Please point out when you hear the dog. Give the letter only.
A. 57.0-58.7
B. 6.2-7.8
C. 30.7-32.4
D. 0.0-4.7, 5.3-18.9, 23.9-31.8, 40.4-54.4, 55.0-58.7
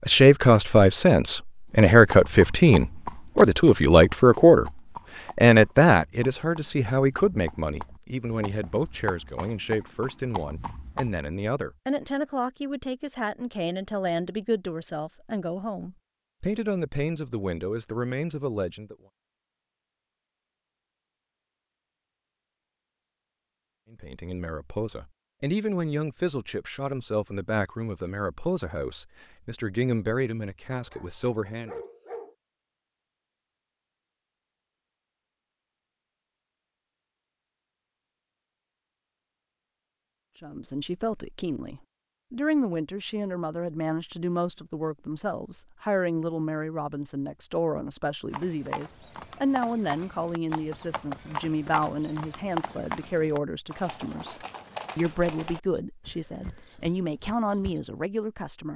C.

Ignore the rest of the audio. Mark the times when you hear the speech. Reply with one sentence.
The speech can be heard from 0.0 to 4.7 s, from 5.3 to 18.9 s, from 23.9 to 31.8 s, from 40.4 to 54.4 s and from 55.0 to 58.7 s.